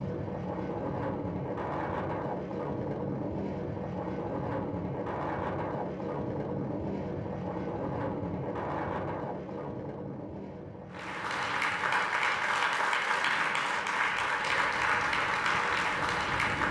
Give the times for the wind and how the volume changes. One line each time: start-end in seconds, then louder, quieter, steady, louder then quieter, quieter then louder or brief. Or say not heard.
0.0-16.6 quieter.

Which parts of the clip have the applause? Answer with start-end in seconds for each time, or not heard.
10.9-16.6.